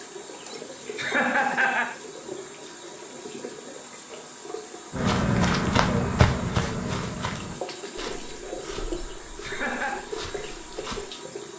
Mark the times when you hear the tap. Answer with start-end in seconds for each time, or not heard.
0.0-11.5.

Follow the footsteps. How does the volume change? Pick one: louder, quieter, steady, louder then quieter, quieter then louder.
quieter.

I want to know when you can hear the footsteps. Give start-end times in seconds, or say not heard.
4.9-11.1.